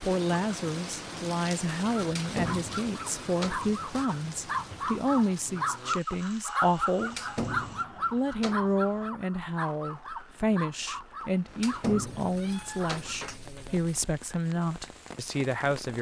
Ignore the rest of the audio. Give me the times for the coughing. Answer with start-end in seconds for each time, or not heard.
not heard.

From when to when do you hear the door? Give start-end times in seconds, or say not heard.
2.0-3.7, 7.0-8.8, 11.4-13.2.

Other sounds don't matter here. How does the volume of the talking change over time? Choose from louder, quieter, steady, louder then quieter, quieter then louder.
steady.